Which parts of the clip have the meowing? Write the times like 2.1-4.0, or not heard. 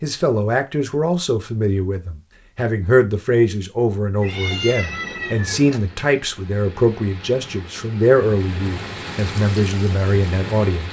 4.2-5.8.